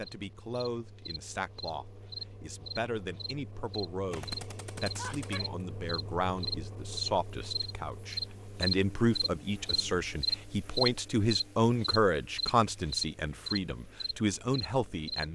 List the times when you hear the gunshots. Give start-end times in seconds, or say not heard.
4.1-5.5.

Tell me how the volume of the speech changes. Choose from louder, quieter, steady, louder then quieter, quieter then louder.
louder.